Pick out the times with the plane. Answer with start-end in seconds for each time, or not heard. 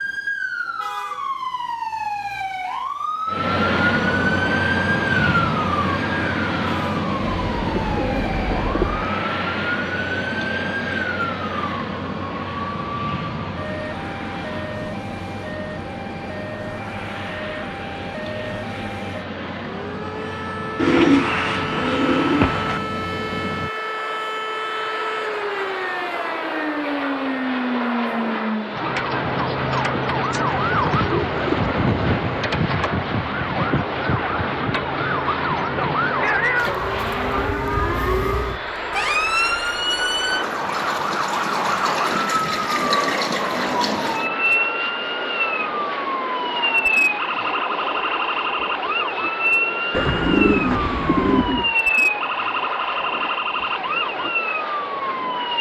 3.2-55.5.